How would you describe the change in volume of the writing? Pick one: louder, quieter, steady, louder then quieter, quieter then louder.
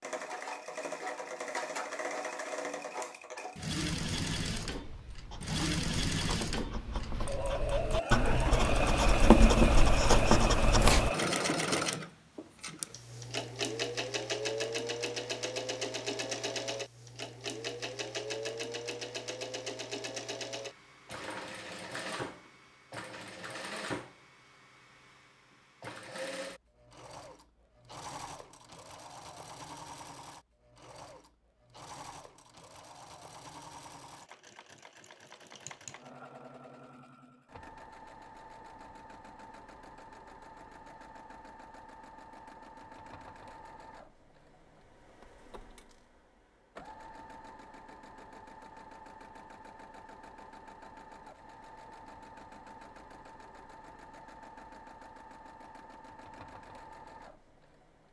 louder.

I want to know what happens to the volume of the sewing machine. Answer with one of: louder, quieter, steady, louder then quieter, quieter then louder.
quieter.